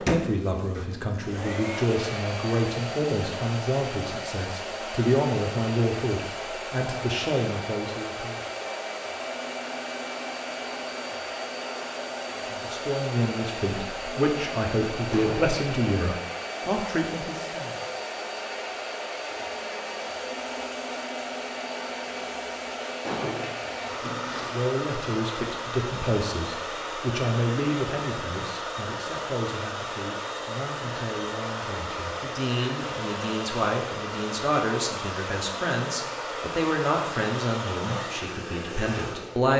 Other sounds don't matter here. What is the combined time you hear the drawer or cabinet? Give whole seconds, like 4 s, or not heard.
2 s.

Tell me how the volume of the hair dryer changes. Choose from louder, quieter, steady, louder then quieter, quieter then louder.
steady.